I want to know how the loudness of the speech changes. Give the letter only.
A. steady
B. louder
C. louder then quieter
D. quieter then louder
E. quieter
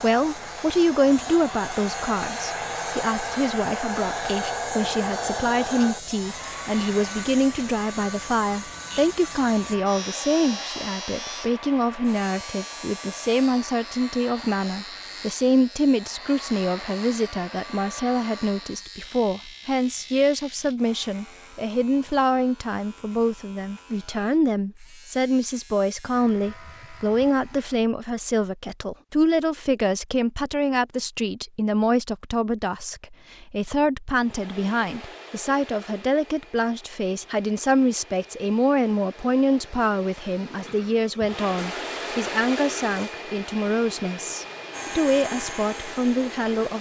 A.